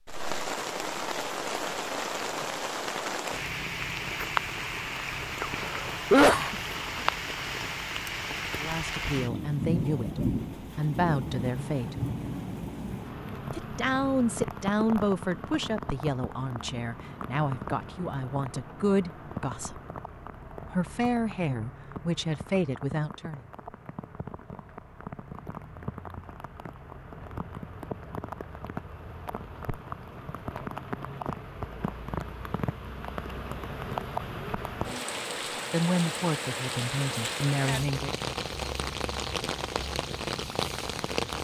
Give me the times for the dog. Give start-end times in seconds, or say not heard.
not heard.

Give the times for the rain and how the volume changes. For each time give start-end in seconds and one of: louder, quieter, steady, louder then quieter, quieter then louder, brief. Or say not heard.
0.1-41.4 quieter then louder.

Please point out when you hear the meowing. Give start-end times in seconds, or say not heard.
not heard.